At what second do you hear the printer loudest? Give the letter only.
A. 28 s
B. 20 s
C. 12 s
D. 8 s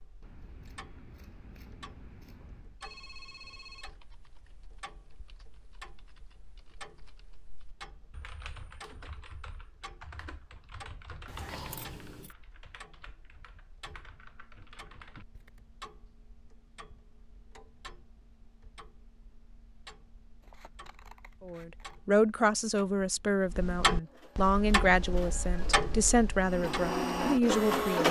A.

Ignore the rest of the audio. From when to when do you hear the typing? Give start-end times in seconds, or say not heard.
3.8-15.7.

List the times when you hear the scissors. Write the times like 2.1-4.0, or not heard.
0.2-2.8, 11.2-12.3, 20.4-22.1.